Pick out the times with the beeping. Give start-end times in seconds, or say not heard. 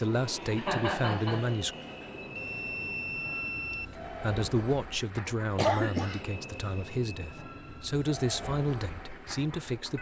2.4-3.9.